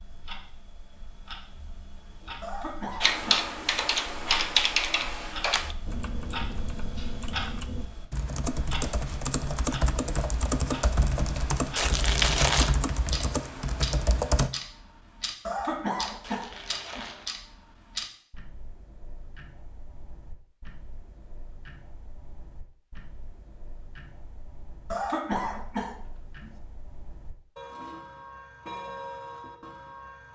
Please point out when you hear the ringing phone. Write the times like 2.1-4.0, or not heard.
not heard.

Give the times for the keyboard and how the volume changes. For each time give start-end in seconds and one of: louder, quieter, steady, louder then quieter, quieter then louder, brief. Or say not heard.
3.0-14.5 quieter then louder.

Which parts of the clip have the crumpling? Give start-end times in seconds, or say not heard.
11.8-12.8, 16.2-17.3.